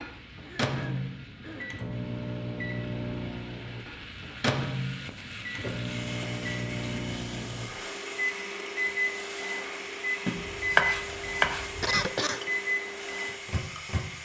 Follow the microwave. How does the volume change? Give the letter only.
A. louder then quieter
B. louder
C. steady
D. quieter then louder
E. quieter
C.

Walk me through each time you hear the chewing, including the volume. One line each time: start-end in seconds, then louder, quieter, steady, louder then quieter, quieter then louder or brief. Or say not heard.
not heard.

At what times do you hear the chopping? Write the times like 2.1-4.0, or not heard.
10.2-11.9.